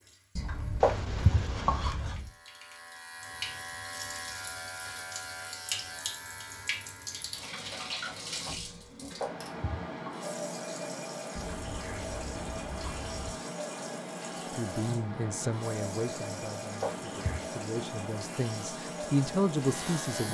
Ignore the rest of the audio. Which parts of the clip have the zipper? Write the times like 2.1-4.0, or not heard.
0.3-2.3, 11.3-13.3.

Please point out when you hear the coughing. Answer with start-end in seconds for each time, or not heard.
0.8-1.9, 9.2-9.9, 16.8-17.4.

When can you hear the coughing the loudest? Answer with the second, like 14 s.
1 s.